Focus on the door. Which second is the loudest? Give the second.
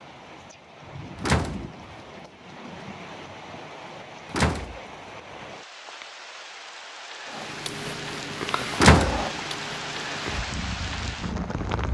9 s.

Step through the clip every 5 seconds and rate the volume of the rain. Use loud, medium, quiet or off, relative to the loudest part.
medium, loud, loud.